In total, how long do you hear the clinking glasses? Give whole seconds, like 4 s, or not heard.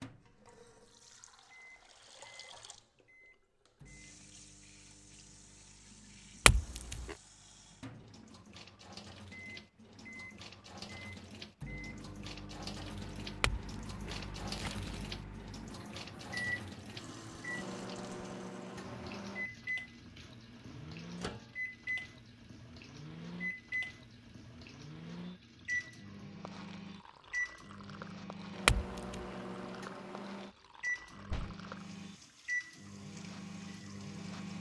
3 s.